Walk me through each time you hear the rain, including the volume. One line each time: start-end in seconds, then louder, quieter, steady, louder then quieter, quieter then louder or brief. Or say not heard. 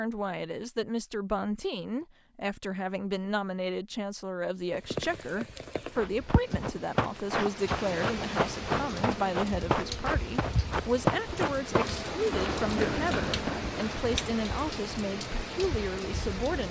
4.7-16.6 louder.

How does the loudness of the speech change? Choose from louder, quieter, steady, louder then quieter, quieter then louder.
steady.